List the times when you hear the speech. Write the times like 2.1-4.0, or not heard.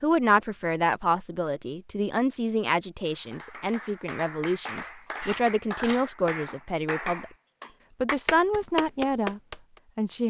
0.0-7.2, 8.0-10.2.